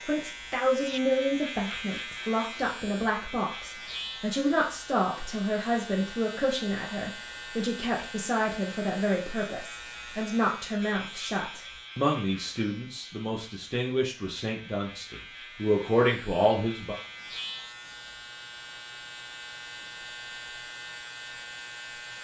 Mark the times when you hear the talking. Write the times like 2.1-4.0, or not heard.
0.0-16.9.